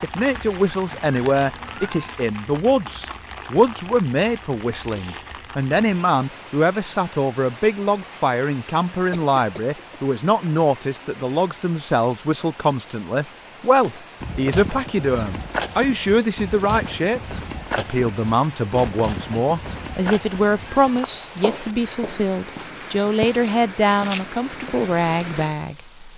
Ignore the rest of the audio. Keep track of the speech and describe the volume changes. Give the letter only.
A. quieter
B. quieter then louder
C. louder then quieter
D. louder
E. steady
E.